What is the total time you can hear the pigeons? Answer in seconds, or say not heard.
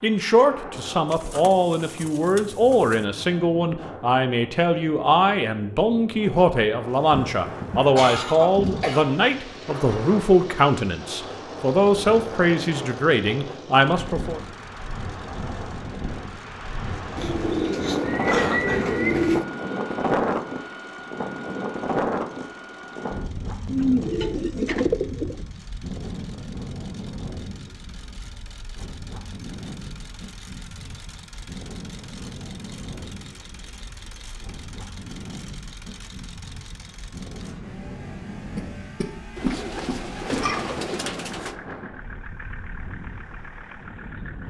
8 s.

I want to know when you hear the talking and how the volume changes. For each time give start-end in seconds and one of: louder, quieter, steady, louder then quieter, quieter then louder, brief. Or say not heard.
0.0-14.4 steady.